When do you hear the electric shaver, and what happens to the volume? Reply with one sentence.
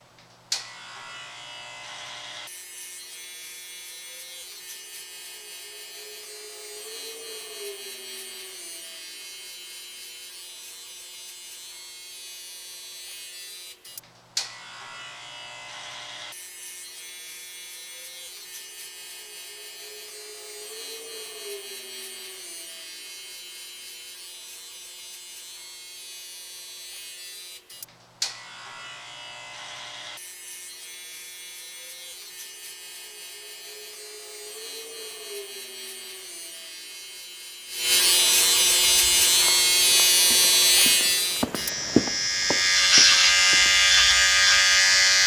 The electric shaver can be heard from 0.0 to 45.2 s, getting louder.